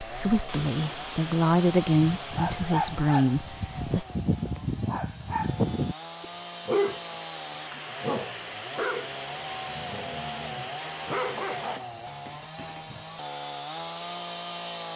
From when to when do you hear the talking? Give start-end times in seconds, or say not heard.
0.0-4.0.